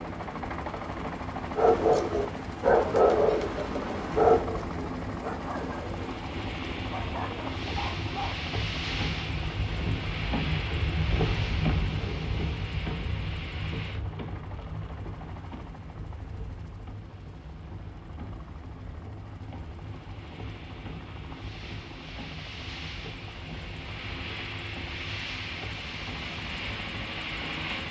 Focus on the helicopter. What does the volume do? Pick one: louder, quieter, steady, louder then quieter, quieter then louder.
quieter then louder.